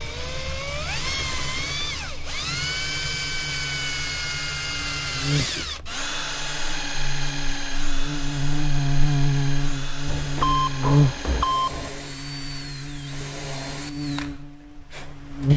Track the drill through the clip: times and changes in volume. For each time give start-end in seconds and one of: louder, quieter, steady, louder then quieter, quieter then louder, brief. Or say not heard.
0.0-15.5 quieter.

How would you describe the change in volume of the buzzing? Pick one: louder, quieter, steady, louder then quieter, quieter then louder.
louder then quieter.